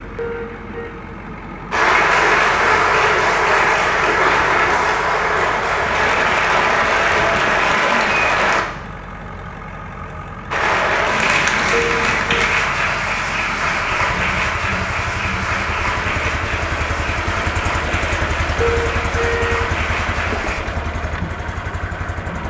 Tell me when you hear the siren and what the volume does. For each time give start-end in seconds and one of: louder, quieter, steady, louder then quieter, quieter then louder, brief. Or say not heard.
not heard.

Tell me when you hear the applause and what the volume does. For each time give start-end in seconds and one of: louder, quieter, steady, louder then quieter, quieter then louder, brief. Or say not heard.
1.7-8.7 steady
10.5-20.6 quieter.